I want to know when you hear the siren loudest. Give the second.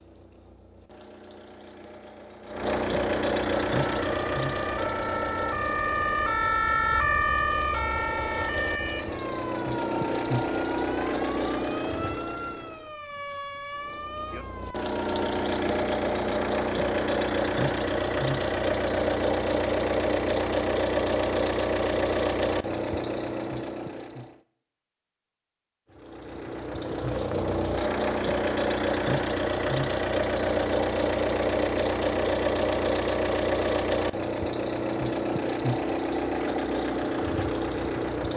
7 s.